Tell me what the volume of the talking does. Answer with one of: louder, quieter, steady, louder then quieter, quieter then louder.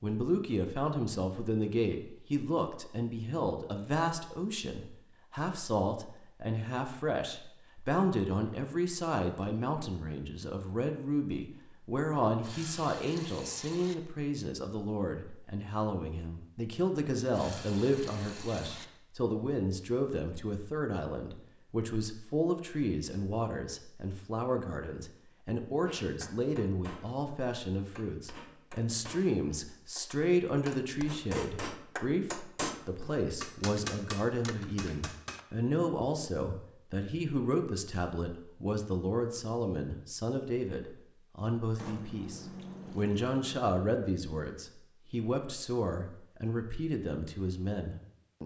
steady.